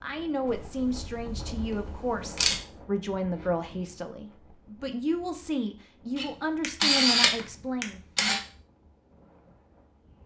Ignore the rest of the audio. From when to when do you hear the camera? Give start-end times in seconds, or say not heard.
0.5-2.6, 6.2-8.4.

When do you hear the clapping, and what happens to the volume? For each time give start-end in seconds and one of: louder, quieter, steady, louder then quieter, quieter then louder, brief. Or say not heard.
not heard.